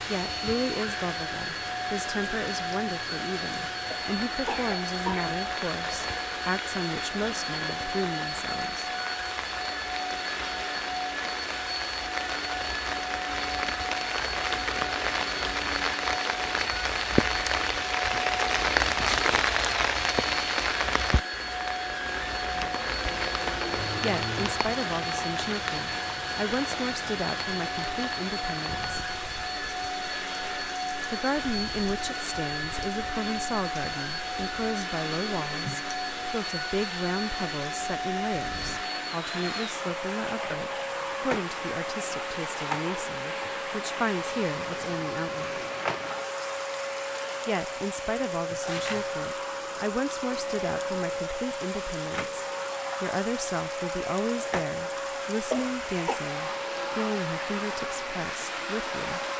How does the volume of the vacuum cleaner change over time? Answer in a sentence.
The volume of the vacuum cleaner stays about the same.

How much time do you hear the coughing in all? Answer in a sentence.
You can hear the coughing for 2 seconds altogether.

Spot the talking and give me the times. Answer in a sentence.
You can hear the talking from 0.1 to 8.9 s, from 24.0 to 28.9 s, from 31.1 to 45.6 s and from 47.5 to 59.2 s.